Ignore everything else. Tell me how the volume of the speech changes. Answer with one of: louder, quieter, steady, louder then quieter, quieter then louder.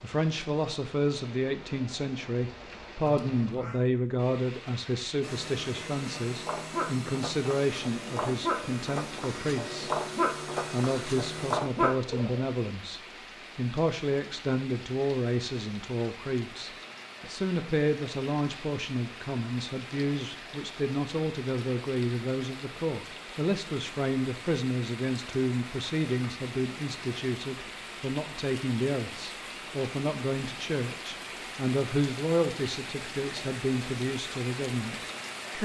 steady.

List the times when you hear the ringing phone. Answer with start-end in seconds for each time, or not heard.
not heard.